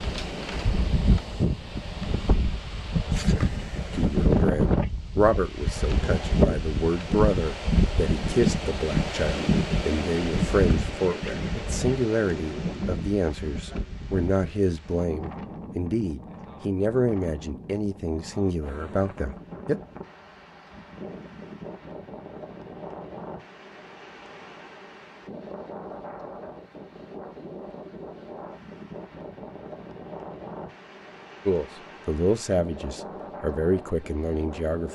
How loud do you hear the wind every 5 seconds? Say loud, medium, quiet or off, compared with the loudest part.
loud, loud, medium, quiet, quiet, quiet, quiet.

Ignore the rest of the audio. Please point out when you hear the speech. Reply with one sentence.
You can hear the speech from 3.9 to 19.8 s and from 31.4 to 34.8 s.